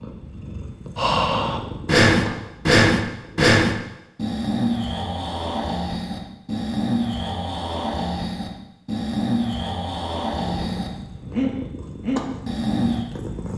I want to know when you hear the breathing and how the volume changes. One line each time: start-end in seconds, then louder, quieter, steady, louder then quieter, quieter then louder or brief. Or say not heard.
0.9-13.1 quieter.